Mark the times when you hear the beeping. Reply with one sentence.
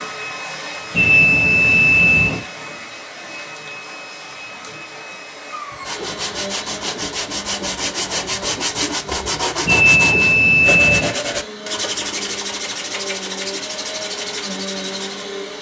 The beeping can be heard from 0.9 to 2.4 s and from 9.7 to 11.2 s.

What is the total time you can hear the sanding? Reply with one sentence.
The sanding can be heard for 10 seconds in total.